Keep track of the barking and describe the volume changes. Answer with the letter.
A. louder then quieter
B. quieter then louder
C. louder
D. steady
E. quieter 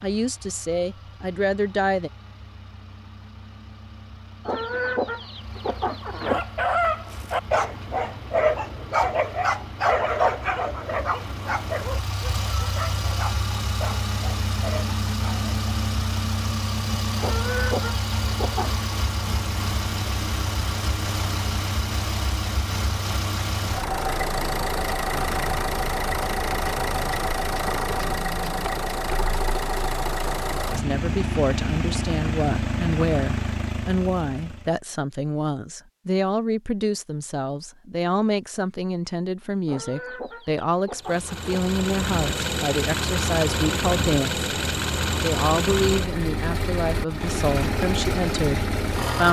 E.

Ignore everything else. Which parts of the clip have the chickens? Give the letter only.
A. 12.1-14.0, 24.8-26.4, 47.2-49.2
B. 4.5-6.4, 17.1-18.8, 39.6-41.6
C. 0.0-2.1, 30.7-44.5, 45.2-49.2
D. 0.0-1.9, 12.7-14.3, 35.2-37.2
B.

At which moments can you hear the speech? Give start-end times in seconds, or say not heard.
0.0-2.1, 30.7-44.5, 45.2-49.2.